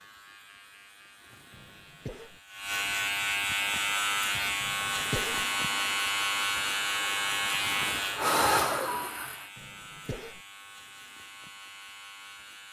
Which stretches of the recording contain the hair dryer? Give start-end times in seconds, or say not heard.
3.7-9.4.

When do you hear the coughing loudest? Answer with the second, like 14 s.
5 s.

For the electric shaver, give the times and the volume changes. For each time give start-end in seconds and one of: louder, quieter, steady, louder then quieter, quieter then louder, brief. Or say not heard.
0.0-12.6 louder then quieter.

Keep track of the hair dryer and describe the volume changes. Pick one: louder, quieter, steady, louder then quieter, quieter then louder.
louder.